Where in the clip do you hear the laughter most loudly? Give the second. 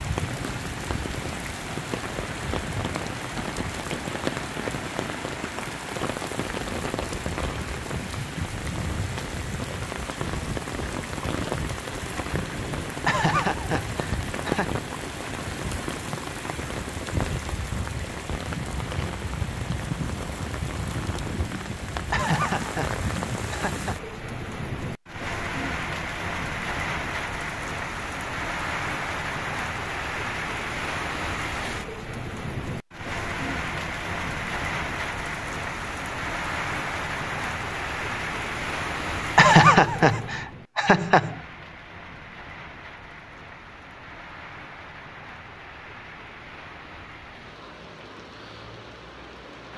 40 s.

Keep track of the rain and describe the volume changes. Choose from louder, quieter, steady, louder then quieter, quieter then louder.
quieter.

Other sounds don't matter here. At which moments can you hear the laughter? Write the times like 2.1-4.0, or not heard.
13.1-14.8, 22.1-23.9, 39.4-41.4.